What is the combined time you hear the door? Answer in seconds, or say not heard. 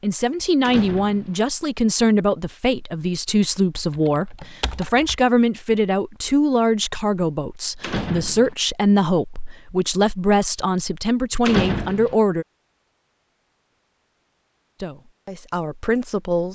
2 s.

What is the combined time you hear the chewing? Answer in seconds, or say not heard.
not heard.